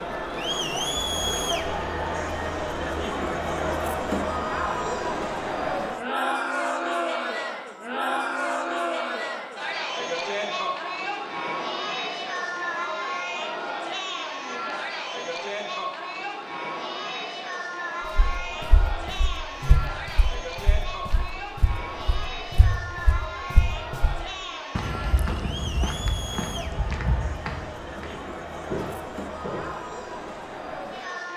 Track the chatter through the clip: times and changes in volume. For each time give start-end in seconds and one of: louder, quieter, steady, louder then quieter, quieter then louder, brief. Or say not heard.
0.0-31.3 quieter.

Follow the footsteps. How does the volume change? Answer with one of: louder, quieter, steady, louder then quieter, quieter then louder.
steady.